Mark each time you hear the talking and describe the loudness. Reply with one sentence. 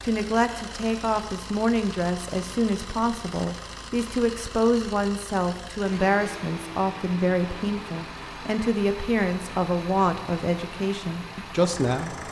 The talking can be heard from 0.0 to 12.2 s, at a steady volume.